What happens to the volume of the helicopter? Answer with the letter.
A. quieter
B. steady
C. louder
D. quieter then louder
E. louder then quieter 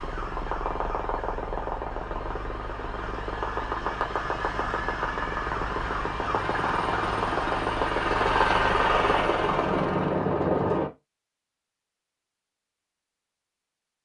C.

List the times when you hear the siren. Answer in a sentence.
The siren can be heard from 0.0 to 7.5 s.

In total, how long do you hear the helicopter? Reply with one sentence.
You can hear the helicopter for 11 seconds altogether.